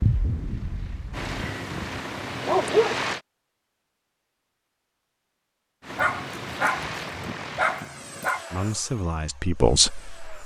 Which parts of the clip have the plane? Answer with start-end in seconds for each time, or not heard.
0.0-3.2, 5.8-10.4.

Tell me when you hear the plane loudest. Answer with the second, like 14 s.
3 s.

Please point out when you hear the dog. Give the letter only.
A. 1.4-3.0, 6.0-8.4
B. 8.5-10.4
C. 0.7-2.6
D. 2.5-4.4
A.